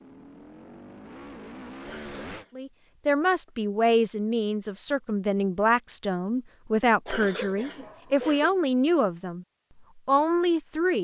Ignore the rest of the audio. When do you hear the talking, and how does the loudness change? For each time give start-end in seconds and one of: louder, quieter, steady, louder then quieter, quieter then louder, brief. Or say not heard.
2.5-10.9 steady.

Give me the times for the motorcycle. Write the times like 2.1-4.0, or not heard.
0.0-2.5.